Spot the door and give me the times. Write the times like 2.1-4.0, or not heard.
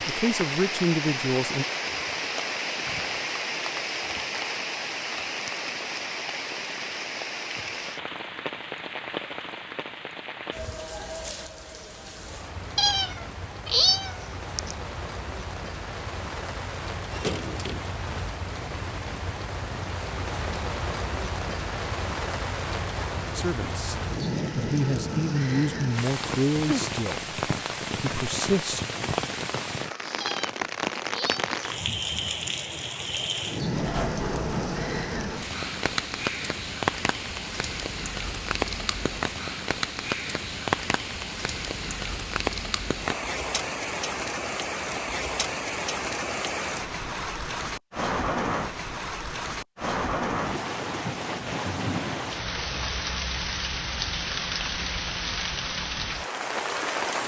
17.1-17.9, 33.8-35.5.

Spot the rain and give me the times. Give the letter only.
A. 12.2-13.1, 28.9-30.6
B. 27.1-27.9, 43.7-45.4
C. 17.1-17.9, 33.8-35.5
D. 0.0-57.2
D.